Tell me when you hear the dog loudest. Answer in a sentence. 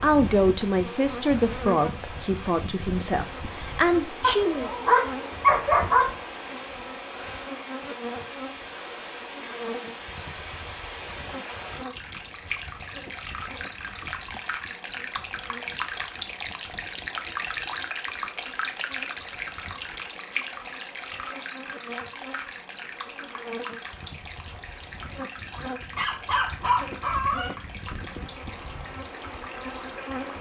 The loudest moment of the dog is at 6 seconds.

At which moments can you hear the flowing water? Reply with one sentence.
You can hear the flowing water from 0.0 to 30.3 s.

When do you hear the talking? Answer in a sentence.
You can hear the talking from 0.0 to 4.7 s.